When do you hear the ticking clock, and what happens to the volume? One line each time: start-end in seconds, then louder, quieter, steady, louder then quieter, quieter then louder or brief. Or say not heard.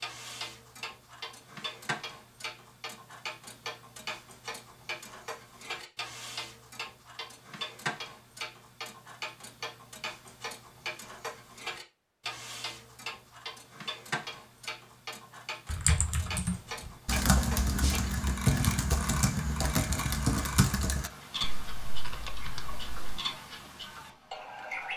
0.0-24.9 steady.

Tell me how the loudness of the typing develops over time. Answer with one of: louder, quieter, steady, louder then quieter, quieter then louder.
quieter.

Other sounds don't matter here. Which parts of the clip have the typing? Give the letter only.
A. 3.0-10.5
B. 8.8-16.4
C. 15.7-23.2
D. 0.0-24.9
C.